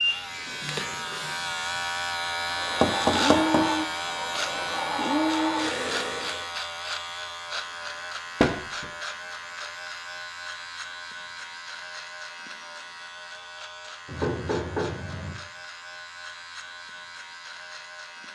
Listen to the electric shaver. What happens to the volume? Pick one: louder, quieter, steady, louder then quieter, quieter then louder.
quieter.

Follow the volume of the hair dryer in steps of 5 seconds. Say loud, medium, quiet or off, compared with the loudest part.
loud, loud, off, off.